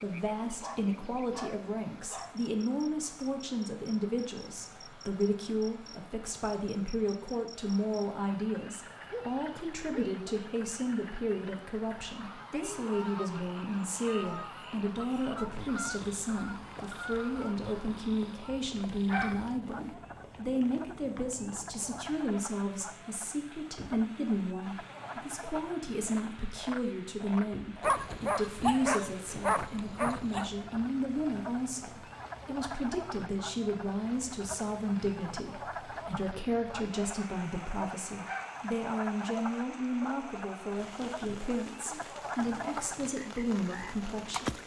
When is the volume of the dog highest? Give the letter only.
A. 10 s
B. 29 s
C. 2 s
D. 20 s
B.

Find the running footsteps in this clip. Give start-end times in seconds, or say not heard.
not heard.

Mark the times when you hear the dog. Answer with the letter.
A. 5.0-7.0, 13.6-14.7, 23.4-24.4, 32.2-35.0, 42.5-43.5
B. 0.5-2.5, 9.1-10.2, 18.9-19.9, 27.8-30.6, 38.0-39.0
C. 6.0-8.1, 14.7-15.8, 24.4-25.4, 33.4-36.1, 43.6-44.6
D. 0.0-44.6
B.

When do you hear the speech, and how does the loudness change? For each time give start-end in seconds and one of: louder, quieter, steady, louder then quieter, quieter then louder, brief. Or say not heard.
0.0-44.6 steady.